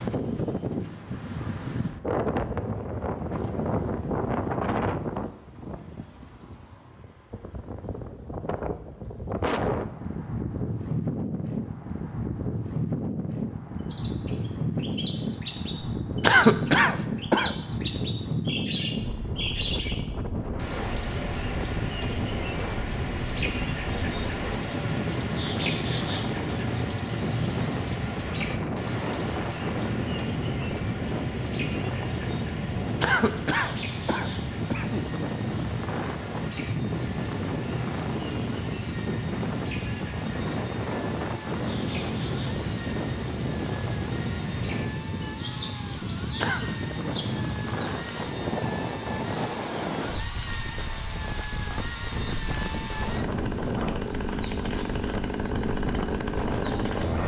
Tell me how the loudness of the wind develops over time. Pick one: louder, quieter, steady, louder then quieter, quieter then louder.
steady.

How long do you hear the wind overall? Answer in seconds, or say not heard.
57 s.